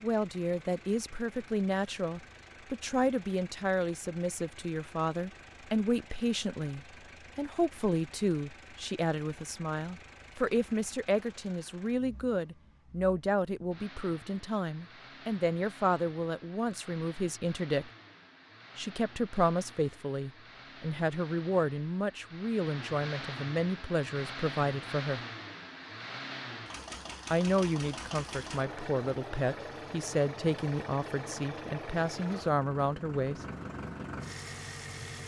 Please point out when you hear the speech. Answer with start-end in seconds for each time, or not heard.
0.0-17.9, 18.8-25.2, 27.3-33.4.